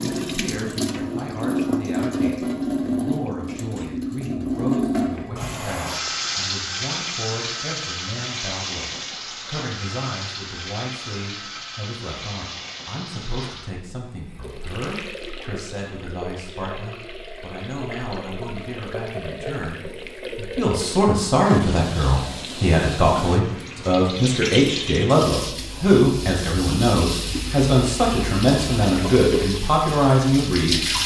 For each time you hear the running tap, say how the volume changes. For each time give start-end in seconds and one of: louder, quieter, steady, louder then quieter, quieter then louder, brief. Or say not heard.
0.0-31.0 quieter then louder.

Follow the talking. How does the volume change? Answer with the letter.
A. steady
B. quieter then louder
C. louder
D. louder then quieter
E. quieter
C.